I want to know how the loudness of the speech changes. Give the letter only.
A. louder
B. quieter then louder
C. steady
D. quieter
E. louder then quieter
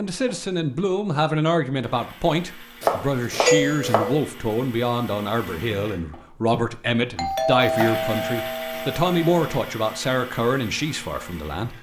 C.